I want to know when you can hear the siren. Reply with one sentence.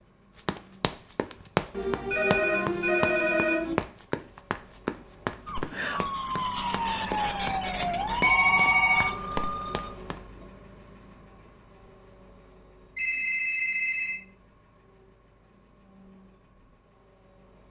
The siren can be heard from 5.5 to 9.9 s.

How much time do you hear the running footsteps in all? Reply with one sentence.
You can hear the running footsteps for 10 seconds altogether.